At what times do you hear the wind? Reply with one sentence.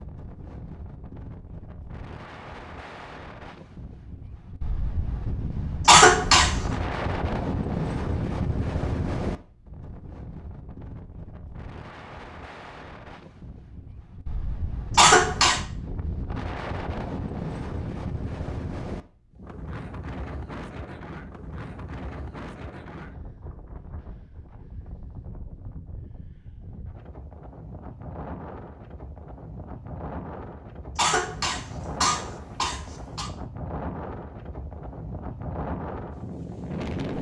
The wind can be heard from 0.0 to 37.1 s.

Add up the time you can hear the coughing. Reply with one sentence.
The coughing can be heard for 4 seconds in total.